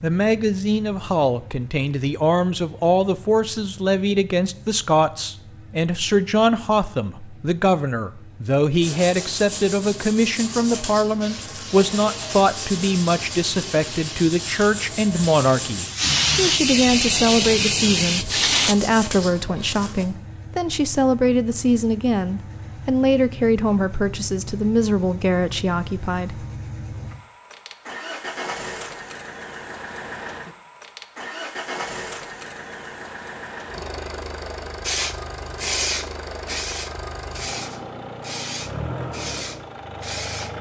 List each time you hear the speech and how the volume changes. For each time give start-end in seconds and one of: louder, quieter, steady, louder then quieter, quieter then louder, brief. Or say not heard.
0.0-26.4 steady.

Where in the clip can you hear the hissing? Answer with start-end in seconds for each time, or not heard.
11.2-18.8, 34.8-40.5.